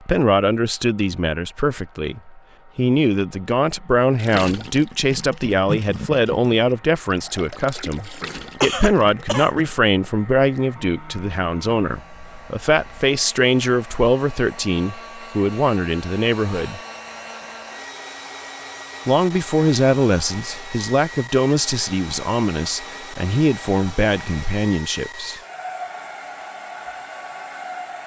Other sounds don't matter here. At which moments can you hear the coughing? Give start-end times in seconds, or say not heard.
8.1-9.5.